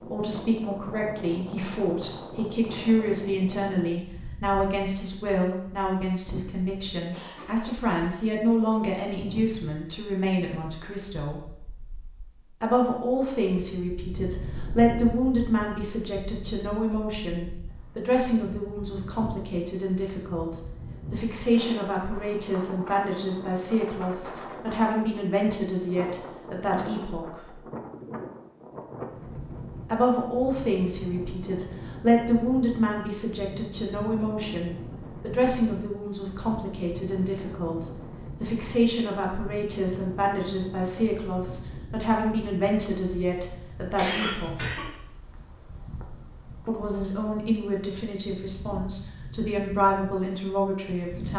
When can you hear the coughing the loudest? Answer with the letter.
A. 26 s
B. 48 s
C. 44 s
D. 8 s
C.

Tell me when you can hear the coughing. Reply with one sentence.
You can hear the coughing from 7.1 to 7.7 s and from 44.0 to 44.9 s.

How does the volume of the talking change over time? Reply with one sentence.
The loudness of the talking stays about the same.